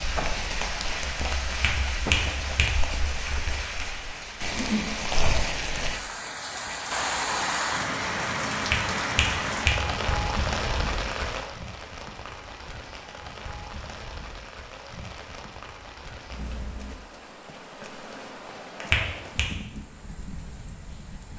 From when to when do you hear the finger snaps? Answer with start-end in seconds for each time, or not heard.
1.5-2.6, 8.6-9.8, 18.8-19.4.